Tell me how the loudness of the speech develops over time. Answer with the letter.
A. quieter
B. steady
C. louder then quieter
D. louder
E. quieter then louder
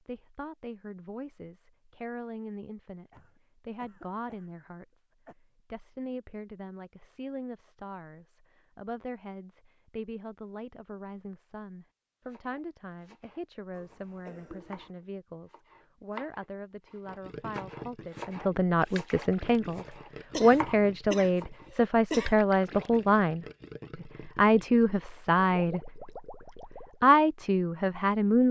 D.